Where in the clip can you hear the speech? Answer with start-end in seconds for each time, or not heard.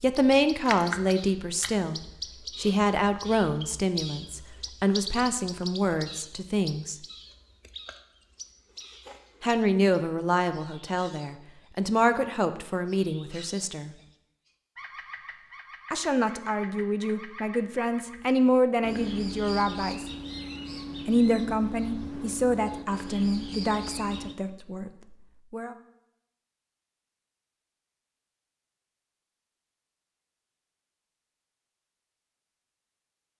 0.0-7.0, 9.4-13.9, 15.9-20.1, 21.1-25.8.